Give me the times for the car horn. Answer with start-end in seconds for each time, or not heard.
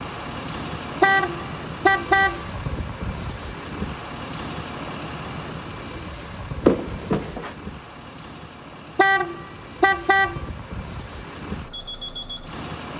1.0-2.5, 8.9-10.4.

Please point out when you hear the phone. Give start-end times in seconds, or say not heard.
6.7-7.5.